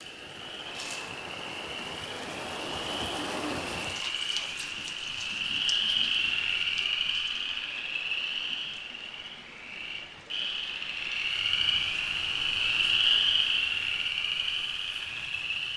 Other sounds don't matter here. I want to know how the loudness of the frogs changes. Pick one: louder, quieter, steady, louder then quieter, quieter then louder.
louder.